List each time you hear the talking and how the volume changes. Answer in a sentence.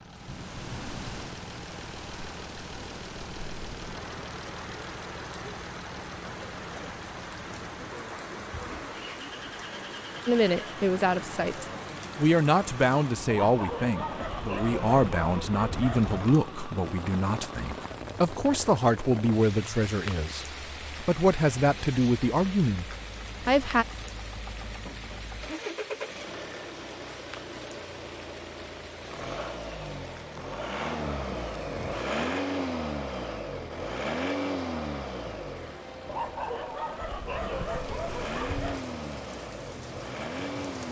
You can hear the talking from 10.2 to 23.9 s, at a steady volume.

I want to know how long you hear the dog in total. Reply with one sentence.
The dog can be heard for 6 seconds in total.